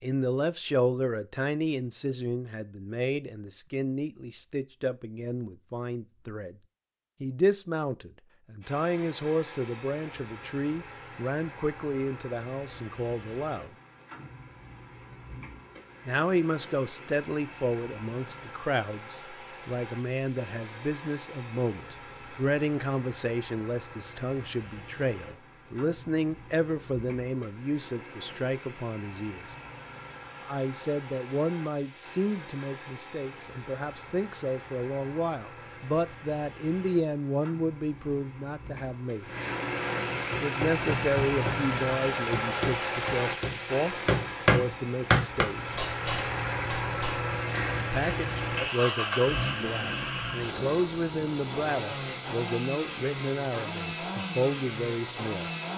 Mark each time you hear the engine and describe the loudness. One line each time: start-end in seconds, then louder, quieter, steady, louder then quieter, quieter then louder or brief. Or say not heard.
8.6-55.7 louder.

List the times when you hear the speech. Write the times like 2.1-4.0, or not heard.
0.0-6.5, 7.2-13.8, 16.1-29.4, 30.4-39.2, 40.4-45.8, 47.8-55.5.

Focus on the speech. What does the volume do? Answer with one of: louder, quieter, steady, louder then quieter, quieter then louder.
steady.